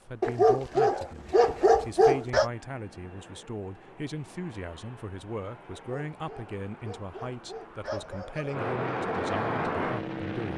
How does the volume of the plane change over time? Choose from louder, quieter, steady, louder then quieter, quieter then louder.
louder.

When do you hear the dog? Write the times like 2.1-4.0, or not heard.
0.2-2.5, 5.8-8.6.